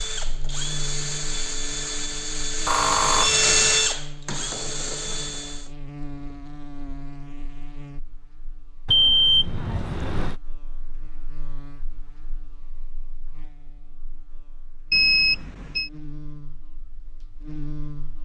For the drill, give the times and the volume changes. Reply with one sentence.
You can hear the drill from 0.0 to 5.7 s, getting louder then quieter.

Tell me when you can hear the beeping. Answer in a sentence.
The beeping can be heard from 2.6 to 4.0 s, from 8.8 to 10.3 s and from 14.9 to 15.9 s.